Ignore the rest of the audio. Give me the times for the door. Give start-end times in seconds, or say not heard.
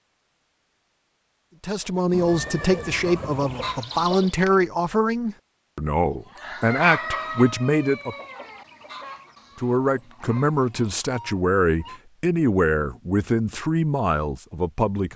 not heard.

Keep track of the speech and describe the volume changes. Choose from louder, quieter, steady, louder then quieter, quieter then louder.
steady.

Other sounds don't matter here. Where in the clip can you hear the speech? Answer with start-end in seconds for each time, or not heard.
1.6-8.2, 9.6-15.1.